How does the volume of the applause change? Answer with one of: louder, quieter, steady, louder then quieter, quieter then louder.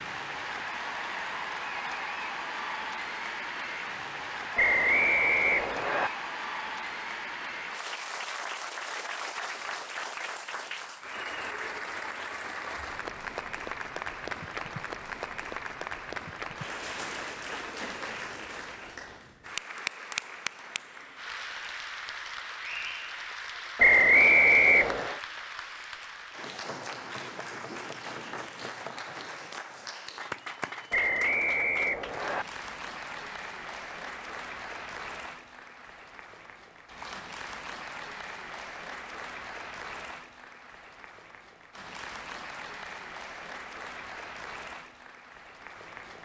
quieter.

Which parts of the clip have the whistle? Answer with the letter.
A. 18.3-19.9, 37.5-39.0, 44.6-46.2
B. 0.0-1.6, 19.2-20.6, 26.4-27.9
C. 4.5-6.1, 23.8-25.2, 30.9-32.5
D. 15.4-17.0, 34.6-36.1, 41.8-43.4
C.